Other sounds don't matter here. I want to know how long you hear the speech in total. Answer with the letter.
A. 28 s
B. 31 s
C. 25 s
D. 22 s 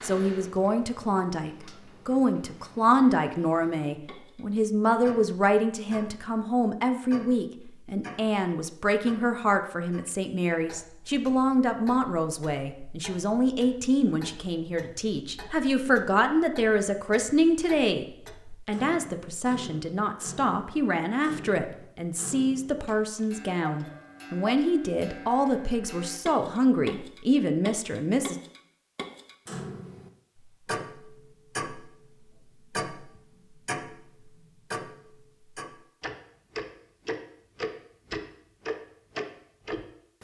A.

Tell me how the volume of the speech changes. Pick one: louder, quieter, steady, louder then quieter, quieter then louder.
steady.